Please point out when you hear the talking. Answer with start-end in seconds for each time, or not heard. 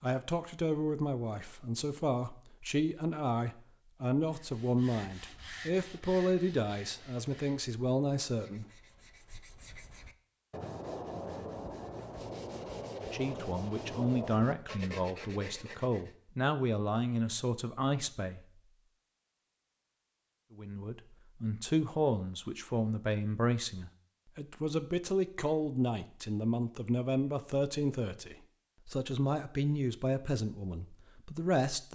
0.0-8.7, 13.0-18.4, 20.6-31.9.